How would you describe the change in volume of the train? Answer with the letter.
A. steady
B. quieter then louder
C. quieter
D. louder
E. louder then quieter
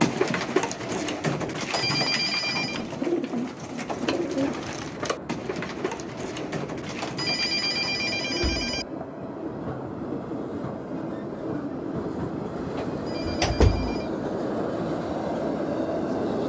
D.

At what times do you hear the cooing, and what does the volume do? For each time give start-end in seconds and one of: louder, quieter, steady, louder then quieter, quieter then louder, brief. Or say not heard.
0.0-8.8 quieter.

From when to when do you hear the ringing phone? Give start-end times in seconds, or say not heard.
1.7-2.9, 7.2-8.8, 13.1-14.1.